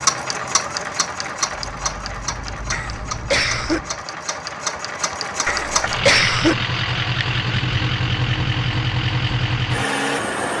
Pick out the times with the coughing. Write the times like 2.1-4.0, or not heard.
2.7-3.8, 5.5-6.5.